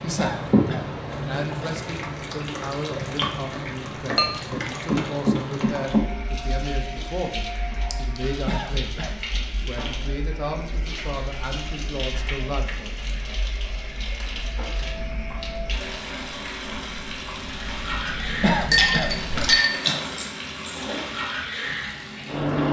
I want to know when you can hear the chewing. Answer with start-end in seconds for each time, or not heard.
14.7-21.1.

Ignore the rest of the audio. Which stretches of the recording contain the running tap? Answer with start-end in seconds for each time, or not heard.
0.0-22.6.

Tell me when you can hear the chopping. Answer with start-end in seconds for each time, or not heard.
not heard.